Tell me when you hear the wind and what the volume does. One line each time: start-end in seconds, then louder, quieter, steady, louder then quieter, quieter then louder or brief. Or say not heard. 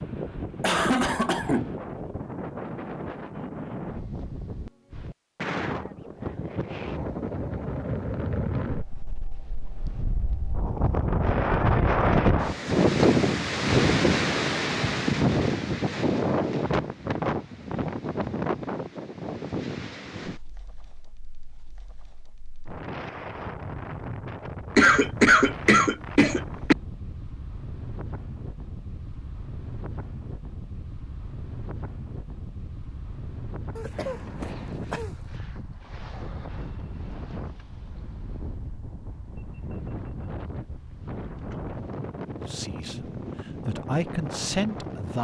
0.0-45.1 louder then quieter.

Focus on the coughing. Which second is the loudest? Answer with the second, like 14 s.
25 s.